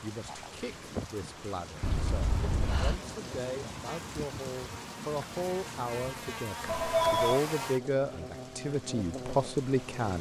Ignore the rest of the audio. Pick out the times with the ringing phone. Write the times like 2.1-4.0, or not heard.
1.8-3.0, 6.7-7.4.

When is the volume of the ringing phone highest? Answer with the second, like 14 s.
7 s.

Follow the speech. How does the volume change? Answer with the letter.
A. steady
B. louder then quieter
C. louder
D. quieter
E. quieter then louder
C.